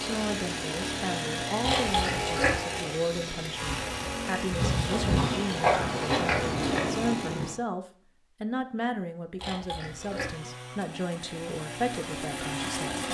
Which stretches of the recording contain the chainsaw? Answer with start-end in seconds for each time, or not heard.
0.0-7.6, 9.8-13.0.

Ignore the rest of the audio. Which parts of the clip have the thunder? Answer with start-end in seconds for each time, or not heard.
4.8-7.6.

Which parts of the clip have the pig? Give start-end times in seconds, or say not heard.
1.6-2.6, 4.5-6.8, 9.3-10.3.